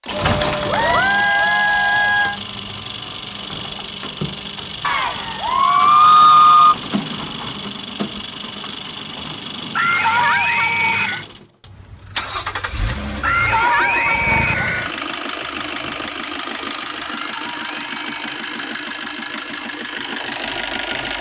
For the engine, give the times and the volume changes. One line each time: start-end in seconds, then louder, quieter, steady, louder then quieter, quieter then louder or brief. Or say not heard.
0.0-21.1 steady.